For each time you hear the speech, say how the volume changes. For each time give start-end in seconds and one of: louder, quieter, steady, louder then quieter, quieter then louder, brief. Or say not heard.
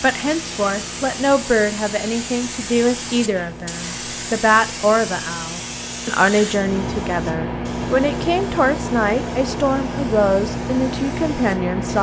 0.0-11.9 steady.